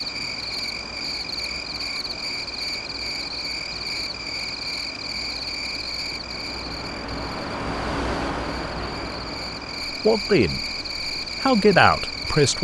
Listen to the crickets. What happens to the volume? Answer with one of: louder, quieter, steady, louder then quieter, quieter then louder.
quieter then louder.